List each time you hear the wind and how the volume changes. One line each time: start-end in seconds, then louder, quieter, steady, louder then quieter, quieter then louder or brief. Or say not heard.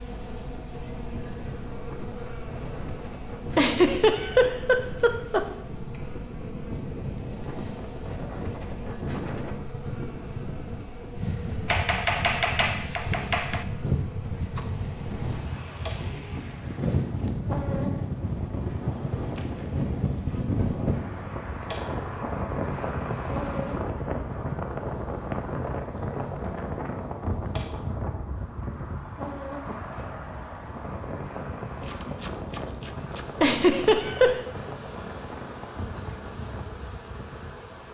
0.0-37.8 louder then quieter.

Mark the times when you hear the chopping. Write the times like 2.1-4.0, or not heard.
11.7-13.7, 31.8-33.3.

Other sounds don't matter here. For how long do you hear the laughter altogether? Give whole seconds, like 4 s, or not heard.
3 s.